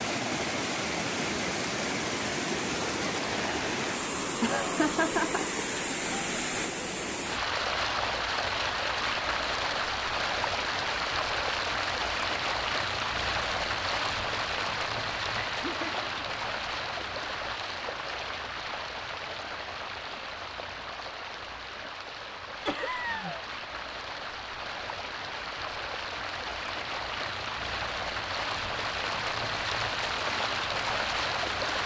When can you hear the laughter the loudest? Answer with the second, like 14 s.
5 s.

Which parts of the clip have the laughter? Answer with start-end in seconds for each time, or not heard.
4.4-5.6, 15.5-16.4, 22.6-23.4.